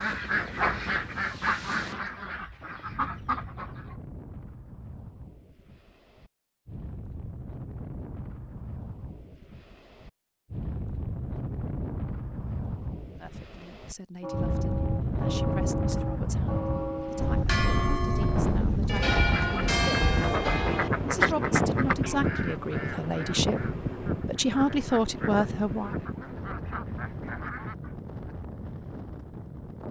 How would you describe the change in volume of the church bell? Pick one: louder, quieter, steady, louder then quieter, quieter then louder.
louder.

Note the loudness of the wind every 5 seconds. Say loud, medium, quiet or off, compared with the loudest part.
quiet, quiet, medium, loud, loud, medium.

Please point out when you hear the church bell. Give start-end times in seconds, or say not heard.
14.2-21.4.